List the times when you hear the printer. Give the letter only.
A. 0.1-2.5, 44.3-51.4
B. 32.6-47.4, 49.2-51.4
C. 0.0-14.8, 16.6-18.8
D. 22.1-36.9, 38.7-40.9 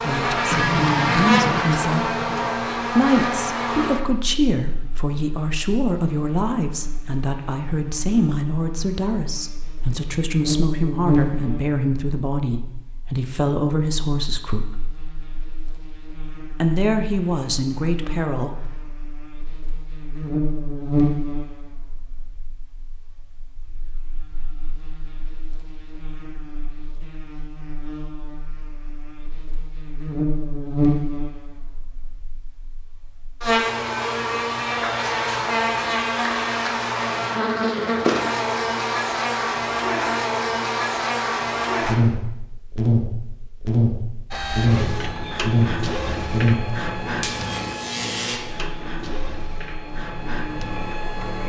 A.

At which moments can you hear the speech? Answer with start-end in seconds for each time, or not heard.
0.0-14.8, 16.6-18.8.